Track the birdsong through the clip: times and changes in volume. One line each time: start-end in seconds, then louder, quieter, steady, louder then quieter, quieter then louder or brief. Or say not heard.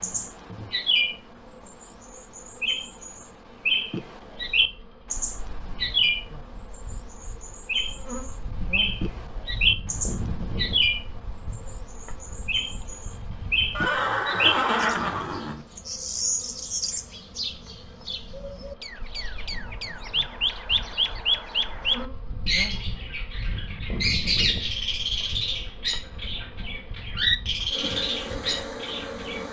0.0-29.4 steady.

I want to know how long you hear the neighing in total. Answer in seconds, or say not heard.
2 s.